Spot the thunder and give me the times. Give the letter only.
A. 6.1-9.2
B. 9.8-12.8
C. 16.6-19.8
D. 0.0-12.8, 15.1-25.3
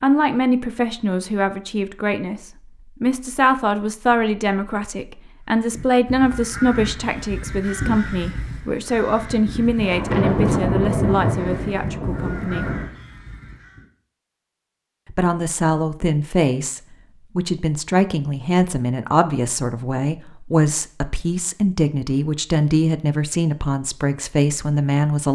B.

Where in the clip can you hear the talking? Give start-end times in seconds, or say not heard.
0.0-12.8, 15.1-25.3.